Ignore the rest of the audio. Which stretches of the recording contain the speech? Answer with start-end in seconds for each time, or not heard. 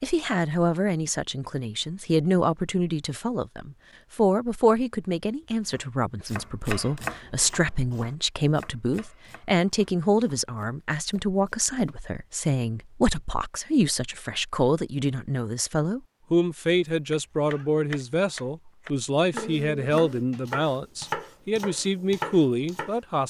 0.0-23.2.